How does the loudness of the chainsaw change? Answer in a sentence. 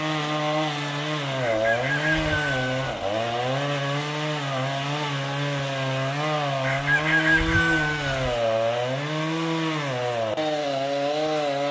The volume of the chainsaw stays about the same.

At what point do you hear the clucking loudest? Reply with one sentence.
The loudest moment of the clucking is at 7 seconds.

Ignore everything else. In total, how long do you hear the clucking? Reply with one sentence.
You can hear the clucking for 3 seconds altogether.